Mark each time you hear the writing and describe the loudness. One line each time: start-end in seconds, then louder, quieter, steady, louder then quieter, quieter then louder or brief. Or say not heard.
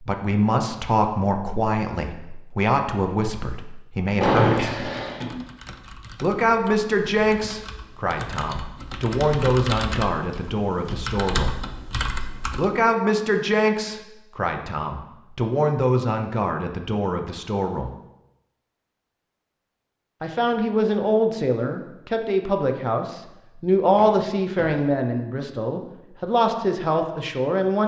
not heard.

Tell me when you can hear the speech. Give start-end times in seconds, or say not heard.
0.0-4.9, 6.2-11.6, 12.6-17.9, 20.2-27.8.